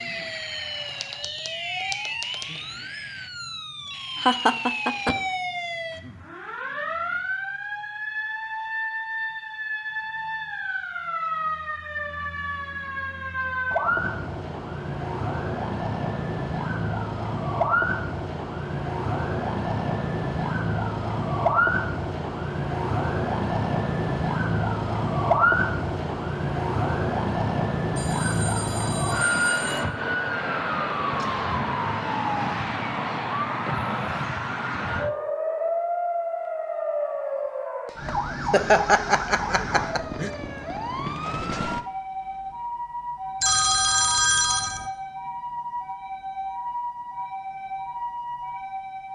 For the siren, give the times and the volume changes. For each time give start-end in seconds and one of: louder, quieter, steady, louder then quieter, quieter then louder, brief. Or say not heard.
0.0-49.1 louder then quieter.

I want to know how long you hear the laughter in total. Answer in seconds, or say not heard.
3 s.